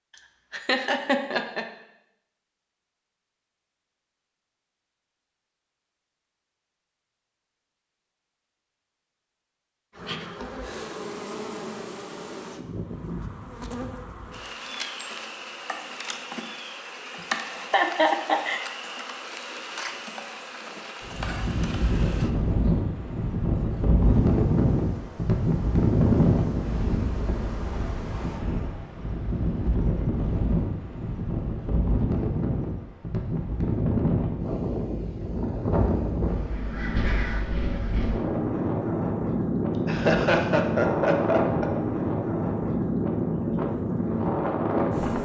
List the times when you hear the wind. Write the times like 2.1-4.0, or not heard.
21.0-45.1.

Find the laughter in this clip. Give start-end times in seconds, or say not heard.
0.5-1.6, 17.7-18.6, 39.9-41.7.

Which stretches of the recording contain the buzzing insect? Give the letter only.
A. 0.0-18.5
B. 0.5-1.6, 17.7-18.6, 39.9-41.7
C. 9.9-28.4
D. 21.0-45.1
C.